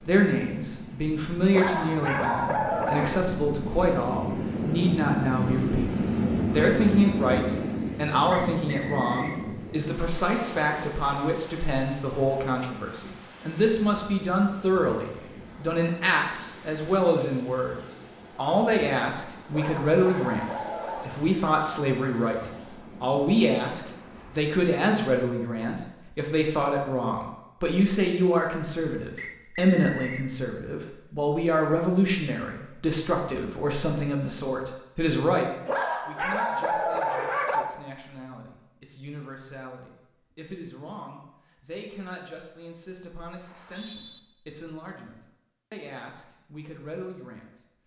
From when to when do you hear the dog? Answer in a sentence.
The dog can be heard from 1.5 to 3.2 s, from 19.5 to 21.1 s and from 35.6 to 37.6 s.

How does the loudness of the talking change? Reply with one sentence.
The loudness of the talking goes down.